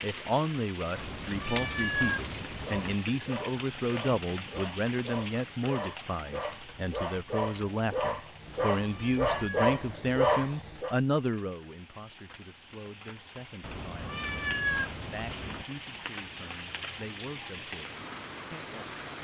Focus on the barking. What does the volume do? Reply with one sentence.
The loudness of the barking goes up.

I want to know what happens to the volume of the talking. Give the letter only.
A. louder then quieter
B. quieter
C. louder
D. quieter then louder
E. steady
B.